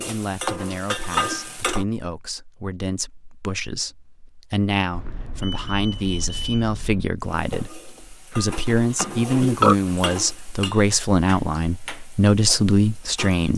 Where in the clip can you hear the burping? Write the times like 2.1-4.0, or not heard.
9.0-9.8.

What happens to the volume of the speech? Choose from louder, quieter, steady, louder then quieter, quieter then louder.
louder.